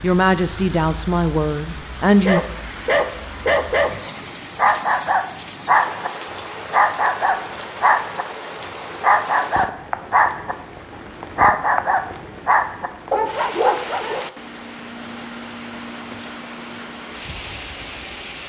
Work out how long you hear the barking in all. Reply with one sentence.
You can hear the barking for 9 seconds altogether.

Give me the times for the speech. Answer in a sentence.
You can hear the speech from 0.0 to 2.4 s.